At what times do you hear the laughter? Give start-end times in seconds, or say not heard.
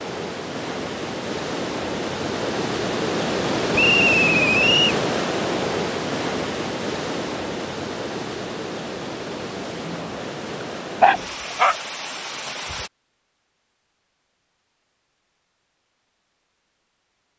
not heard.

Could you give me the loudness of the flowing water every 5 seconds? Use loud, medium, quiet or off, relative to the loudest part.
loud, loud, medium, off.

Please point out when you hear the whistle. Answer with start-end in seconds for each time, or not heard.
3.8-5.0.